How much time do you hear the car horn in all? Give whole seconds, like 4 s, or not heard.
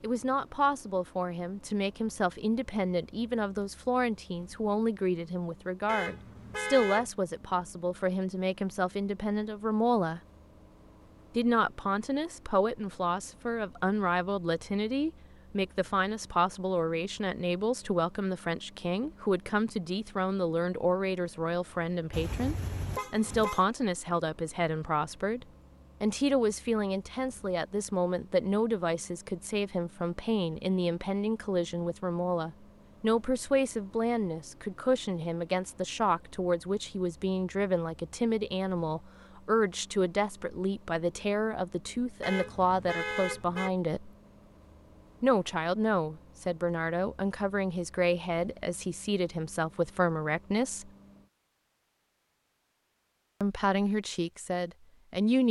4 s.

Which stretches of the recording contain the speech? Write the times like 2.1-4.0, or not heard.
0.0-10.2, 11.3-44.1, 45.2-50.9, 53.4-55.4.